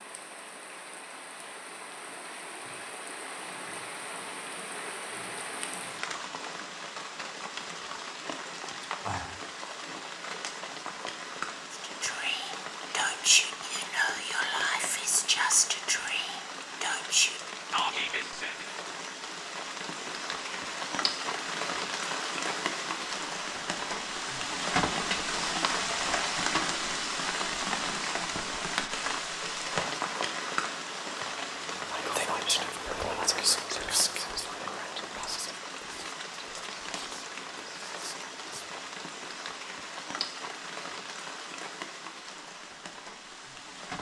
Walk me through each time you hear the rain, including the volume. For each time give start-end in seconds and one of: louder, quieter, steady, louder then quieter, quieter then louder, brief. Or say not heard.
0.0-43.9 louder then quieter.